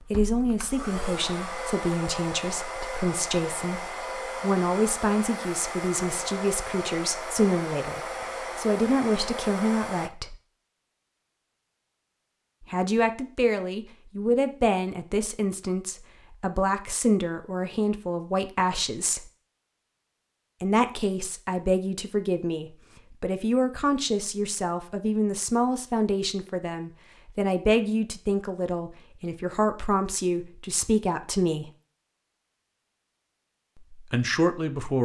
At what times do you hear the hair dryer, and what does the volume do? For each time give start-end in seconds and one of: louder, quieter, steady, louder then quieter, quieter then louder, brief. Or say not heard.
0.0-10.1 steady.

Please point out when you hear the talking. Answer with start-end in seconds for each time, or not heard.
0.1-10.3, 12.7-19.2, 20.6-31.7, 33.8-34.9.